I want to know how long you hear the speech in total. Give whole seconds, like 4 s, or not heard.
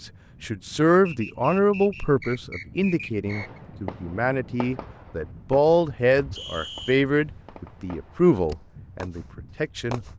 10 s.